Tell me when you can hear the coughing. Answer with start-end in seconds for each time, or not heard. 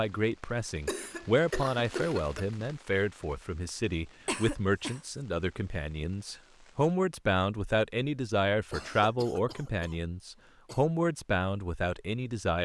0.8-2.5, 4.2-5.0, 8.7-10.8.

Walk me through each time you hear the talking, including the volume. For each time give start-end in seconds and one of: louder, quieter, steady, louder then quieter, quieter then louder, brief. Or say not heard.
0.0-12.5 steady.